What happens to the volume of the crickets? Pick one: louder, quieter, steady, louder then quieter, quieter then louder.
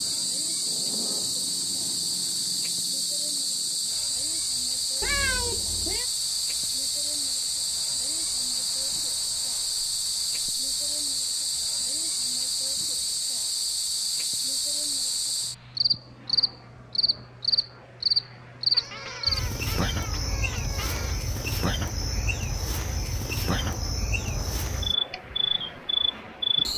steady.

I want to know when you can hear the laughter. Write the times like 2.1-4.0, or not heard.
not heard.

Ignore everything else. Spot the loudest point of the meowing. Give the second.
5 s.